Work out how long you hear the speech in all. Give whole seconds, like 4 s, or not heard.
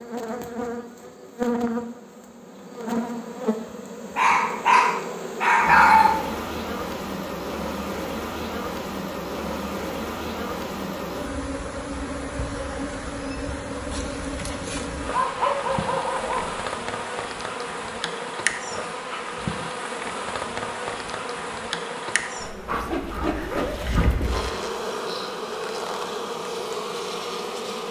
not heard.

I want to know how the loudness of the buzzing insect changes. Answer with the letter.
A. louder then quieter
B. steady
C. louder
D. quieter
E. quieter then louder
B.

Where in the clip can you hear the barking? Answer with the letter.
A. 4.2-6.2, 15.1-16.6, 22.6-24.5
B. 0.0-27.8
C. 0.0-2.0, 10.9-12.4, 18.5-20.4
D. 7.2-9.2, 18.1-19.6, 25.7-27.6
A.